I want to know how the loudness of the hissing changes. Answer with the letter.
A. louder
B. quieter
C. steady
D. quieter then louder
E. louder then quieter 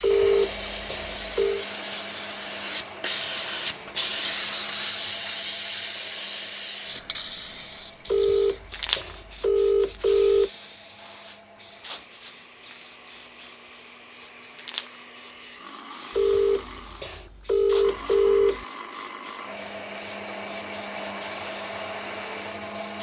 B.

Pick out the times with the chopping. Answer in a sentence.
You can't hear the chopping here.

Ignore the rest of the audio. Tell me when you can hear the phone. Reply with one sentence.
You can hear the phone from 0.0 to 1.6 s, from 8.1 to 10.5 s and from 16.1 to 18.6 s.